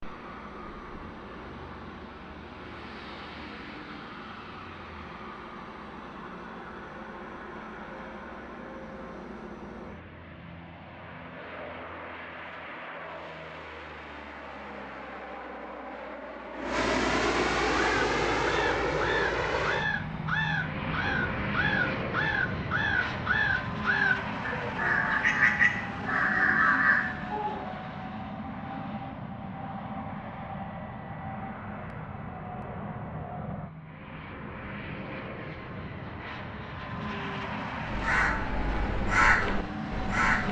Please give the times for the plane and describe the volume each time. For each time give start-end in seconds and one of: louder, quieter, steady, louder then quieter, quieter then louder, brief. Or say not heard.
0.0-40.4 louder then quieter.